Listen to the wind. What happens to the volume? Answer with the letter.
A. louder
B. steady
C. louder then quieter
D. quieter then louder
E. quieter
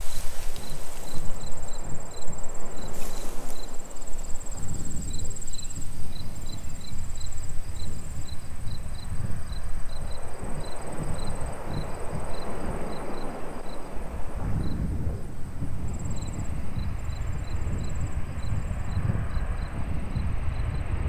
A.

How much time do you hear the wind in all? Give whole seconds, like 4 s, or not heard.
21 s.